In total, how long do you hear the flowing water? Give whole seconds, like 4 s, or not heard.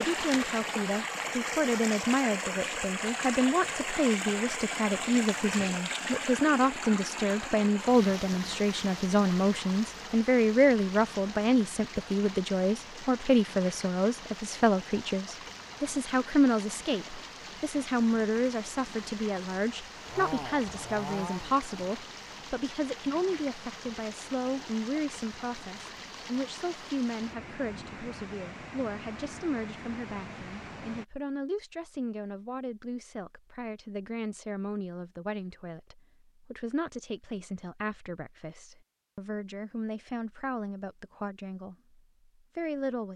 31 s.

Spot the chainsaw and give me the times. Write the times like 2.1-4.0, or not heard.
19.9-21.8.